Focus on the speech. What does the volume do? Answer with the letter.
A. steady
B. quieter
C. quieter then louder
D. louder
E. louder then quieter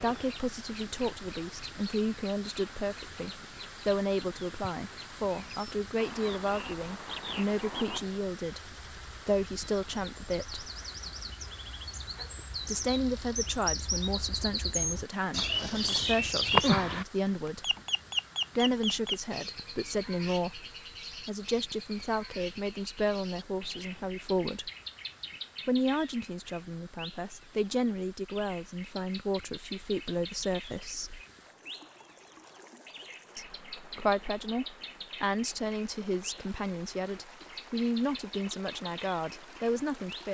A.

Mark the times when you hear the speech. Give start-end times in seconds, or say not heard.
0.0-10.7, 12.7-17.8, 18.6-24.7, 25.6-31.2, 33.4-40.2.